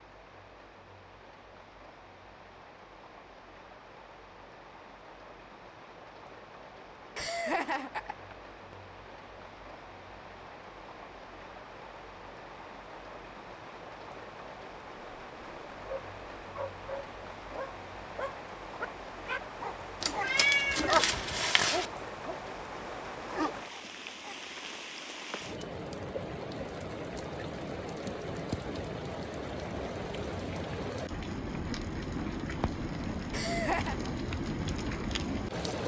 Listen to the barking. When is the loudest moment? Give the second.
21 s.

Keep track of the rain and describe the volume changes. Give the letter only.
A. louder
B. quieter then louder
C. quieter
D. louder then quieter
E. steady
A.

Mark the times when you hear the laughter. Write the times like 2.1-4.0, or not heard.
7.2-8.8, 33.3-34.0.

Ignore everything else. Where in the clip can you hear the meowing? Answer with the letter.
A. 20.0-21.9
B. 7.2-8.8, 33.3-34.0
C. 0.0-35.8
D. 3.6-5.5
A.